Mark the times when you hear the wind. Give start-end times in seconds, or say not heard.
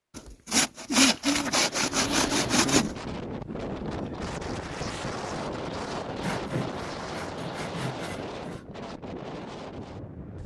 1.9-10.4.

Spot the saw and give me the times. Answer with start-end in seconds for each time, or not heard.
0.1-3.0, 6.2-8.7.